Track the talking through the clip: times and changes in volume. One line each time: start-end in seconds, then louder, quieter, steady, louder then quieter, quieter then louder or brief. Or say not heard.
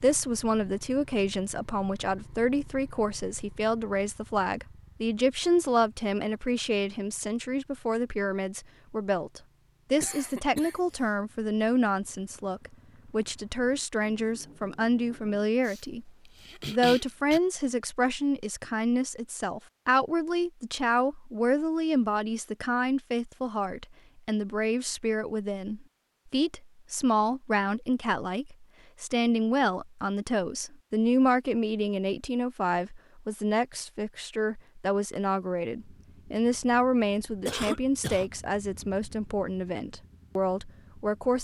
0.0-41.3 steady.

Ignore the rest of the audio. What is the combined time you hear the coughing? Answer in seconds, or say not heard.
4 s.